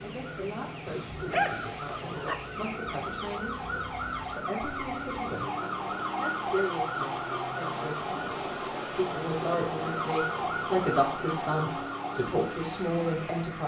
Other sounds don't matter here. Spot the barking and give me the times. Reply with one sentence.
The barking can be heard from 0.8 to 2.4 s.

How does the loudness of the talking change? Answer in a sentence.
The loudness of the talking goes up.